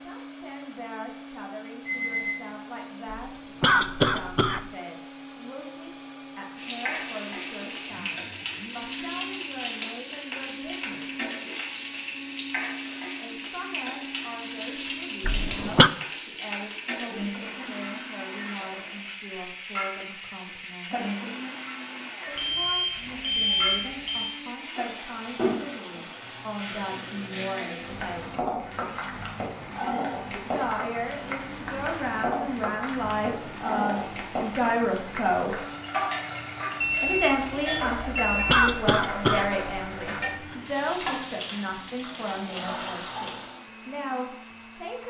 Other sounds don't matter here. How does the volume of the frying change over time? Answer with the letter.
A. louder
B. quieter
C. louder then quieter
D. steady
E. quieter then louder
D.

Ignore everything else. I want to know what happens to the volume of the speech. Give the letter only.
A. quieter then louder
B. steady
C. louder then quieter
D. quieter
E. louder
E.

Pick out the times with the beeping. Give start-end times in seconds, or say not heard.
1.9-2.5, 22.4-24.4, 36.8-38.8.